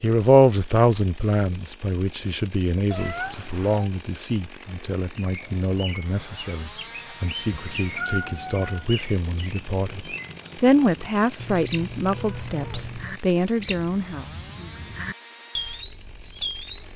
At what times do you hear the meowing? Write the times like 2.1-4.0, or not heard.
2.9-3.9, 7.5-8.8, 11.3-13.2.